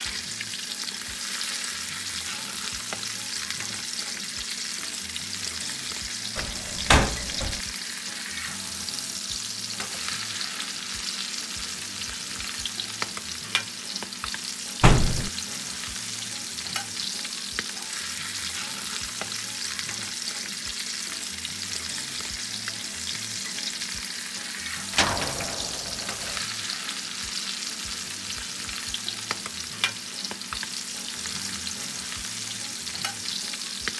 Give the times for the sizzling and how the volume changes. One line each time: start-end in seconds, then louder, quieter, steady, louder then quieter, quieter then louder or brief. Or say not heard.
0.0-33.9 steady.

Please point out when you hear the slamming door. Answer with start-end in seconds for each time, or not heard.
6.3-7.6, 14.8-15.3, 24.9-26.4.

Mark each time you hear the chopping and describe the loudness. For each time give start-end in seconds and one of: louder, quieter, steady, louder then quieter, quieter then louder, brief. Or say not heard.
not heard.